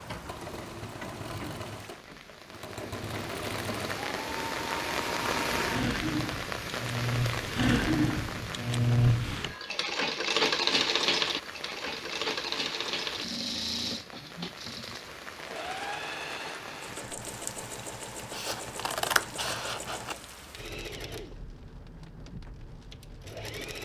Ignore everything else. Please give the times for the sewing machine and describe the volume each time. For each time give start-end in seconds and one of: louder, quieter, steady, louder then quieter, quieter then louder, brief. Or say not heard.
0.0-23.8 louder then quieter.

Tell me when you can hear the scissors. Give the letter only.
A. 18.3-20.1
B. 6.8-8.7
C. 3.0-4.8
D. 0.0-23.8
A.